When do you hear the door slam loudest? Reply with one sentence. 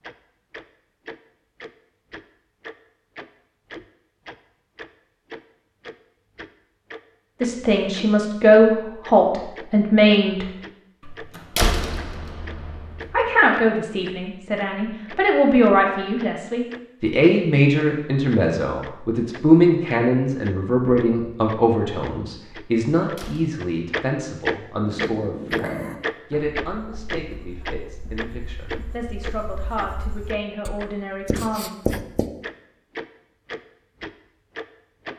The volume of the door slam peaks at 12 seconds.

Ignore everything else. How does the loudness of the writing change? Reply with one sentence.
The loudness of the writing goes down, then up.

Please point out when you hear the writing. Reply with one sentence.
You can hear the writing from 24.8 to 32.3 s.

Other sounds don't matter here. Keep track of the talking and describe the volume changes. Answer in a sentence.
The loudness of the talking goes down.